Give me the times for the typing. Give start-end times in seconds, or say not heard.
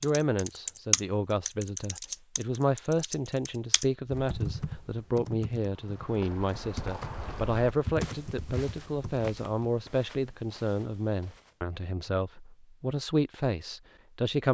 0.0-9.7.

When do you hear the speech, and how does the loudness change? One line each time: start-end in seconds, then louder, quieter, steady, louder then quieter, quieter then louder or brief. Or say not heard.
0.0-14.4 steady.